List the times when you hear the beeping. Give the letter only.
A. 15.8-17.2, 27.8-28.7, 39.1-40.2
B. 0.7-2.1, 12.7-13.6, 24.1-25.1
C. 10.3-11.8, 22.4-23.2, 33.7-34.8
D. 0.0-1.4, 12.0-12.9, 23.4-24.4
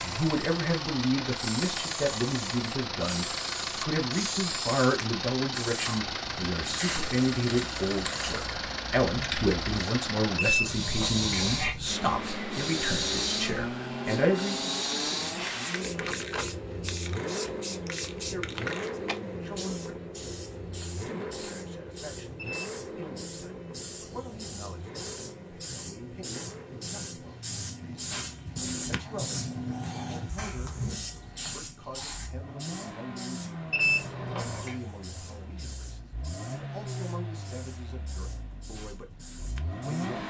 C.